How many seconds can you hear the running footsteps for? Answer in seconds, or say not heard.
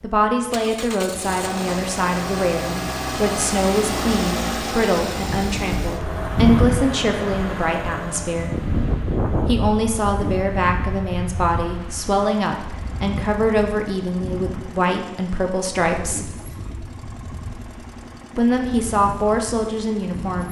not heard.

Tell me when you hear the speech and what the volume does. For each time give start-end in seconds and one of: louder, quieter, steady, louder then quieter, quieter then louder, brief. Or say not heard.
0.0-8.6 steady
9.4-16.4 steady
18.4-20.4 brief.